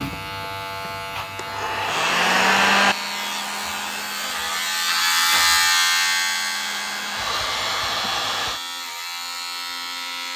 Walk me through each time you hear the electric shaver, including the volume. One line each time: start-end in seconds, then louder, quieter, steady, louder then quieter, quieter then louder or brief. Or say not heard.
0.0-10.3 louder then quieter.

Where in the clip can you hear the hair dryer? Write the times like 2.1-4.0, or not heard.
0.0-8.6.